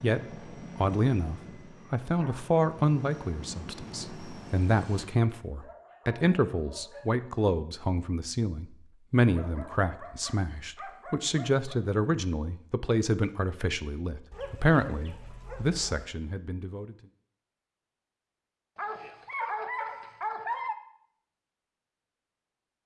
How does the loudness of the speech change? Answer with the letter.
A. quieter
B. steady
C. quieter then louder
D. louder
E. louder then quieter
B.